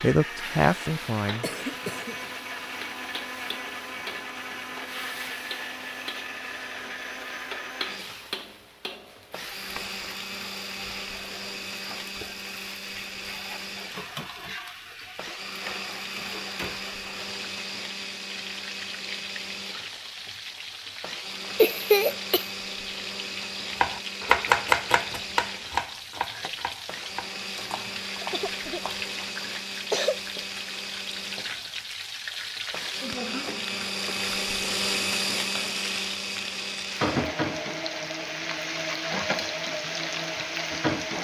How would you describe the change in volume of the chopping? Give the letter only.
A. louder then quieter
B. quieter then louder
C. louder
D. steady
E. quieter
E.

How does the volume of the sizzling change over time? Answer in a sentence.
The loudness of the sizzling goes up.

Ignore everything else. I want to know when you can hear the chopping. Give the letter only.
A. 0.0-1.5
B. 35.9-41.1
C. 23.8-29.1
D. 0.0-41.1
C.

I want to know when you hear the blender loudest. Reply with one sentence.
The loudest moment of the blender is at 35 seconds.